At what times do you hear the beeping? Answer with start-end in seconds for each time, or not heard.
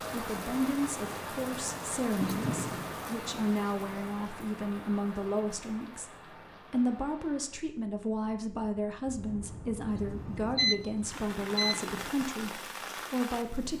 2.2-2.9, 9.8-12.1.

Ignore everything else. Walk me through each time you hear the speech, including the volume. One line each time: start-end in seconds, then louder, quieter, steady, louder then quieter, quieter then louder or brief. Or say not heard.
0.1-6.1 steady
6.7-13.7 steady.